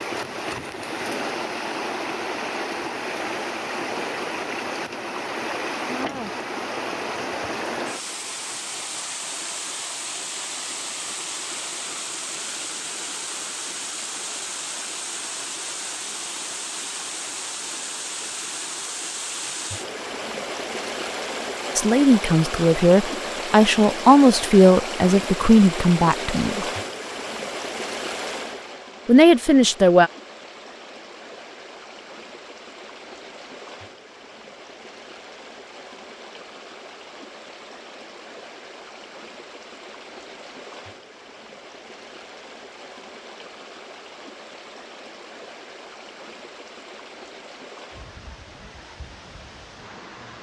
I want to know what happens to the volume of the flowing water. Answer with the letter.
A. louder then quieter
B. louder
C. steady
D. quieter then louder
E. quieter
E.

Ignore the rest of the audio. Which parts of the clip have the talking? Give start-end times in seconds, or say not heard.
21.8-26.6, 29.1-30.1.